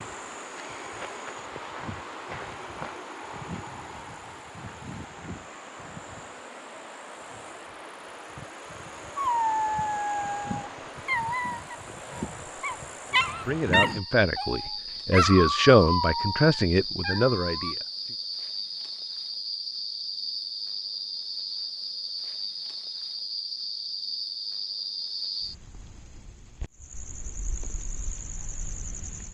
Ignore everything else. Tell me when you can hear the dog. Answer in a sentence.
You can hear the dog from 9.2 to 17.8 s.